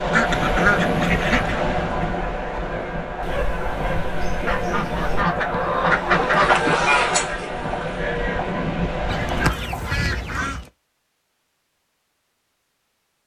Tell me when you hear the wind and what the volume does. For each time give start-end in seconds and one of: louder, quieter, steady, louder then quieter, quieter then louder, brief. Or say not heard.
0.0-9.6 quieter then louder.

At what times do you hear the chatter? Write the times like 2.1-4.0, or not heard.
0.0-10.3.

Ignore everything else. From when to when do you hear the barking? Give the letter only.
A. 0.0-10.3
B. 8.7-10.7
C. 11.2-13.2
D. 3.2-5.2
D.